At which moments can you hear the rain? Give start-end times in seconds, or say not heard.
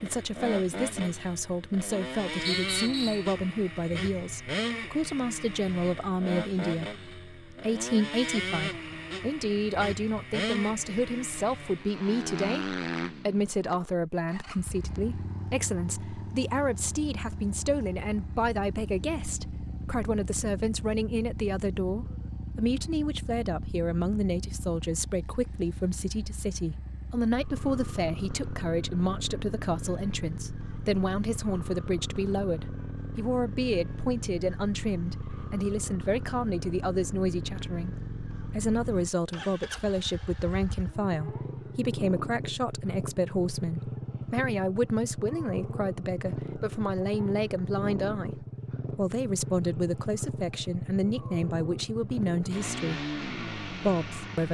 not heard.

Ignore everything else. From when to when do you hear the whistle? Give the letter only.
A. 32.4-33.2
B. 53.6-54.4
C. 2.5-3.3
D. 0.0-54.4
C.